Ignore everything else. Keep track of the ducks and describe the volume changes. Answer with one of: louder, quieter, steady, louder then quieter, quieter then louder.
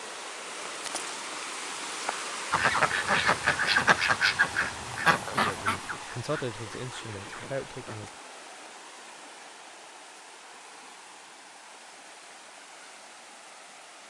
quieter.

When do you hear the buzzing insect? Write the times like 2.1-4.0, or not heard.
not heard.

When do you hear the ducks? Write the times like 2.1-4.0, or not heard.
2.5-8.2.